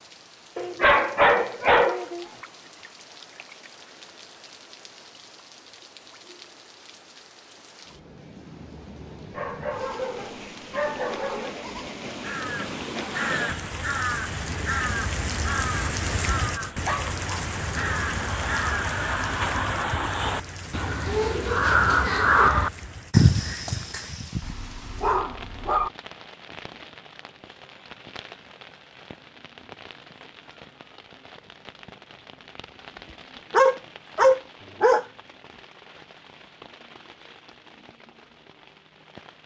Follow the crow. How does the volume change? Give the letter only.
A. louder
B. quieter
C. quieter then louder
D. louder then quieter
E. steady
A.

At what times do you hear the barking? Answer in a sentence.
The barking can be heard from 0.6 to 2.2 s, from 9.3 to 11.6 s, from 16.9 to 17.4 s, from 24.4 to 25.9 s and from 33.5 to 35.0 s.